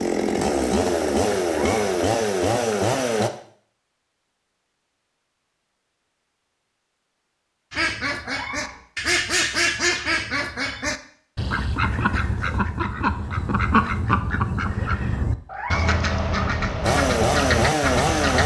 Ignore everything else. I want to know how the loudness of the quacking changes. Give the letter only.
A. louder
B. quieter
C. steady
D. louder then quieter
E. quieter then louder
C.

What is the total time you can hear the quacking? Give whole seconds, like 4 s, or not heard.
11 s.